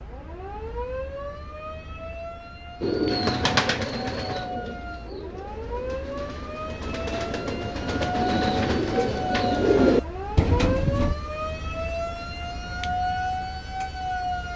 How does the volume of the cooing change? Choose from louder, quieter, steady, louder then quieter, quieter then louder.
quieter then louder.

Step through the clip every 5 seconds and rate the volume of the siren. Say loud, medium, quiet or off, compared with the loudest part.
medium, loud, loud.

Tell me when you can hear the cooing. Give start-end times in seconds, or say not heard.
2.8-11.2.